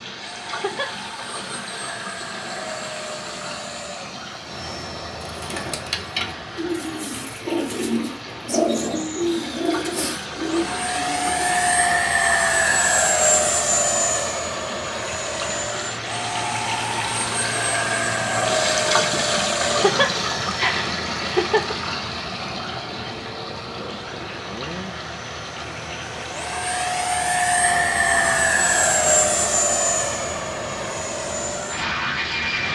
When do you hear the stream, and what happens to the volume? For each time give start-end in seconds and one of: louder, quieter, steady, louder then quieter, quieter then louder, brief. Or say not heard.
0.0-32.6 louder then quieter.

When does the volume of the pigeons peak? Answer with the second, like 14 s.
9 s.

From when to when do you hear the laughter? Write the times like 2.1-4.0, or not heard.
0.5-1.1, 19.6-21.8.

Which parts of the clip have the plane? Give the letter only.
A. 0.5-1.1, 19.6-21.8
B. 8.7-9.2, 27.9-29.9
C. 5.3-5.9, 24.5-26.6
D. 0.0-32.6
D.